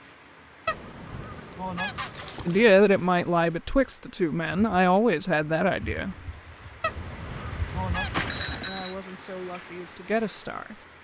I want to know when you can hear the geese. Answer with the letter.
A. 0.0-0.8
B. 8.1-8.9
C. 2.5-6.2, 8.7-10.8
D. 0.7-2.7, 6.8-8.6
D.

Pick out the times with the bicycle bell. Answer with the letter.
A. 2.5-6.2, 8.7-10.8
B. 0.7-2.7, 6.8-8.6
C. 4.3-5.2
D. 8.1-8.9
D.